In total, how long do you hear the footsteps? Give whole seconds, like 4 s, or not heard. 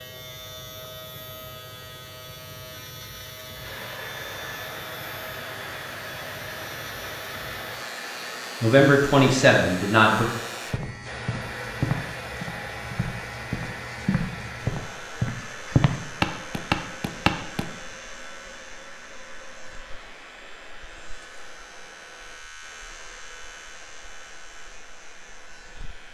7 s.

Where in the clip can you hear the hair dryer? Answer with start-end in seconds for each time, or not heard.
3.5-26.0.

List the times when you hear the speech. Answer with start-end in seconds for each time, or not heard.
8.6-10.2.